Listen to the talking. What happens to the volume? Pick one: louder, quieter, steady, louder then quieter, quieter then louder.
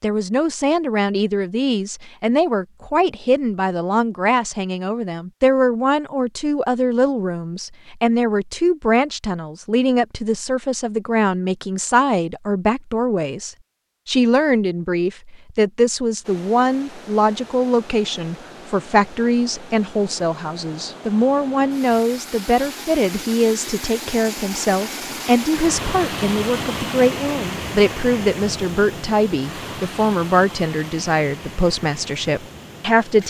steady.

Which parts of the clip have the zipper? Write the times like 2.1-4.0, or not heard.
not heard.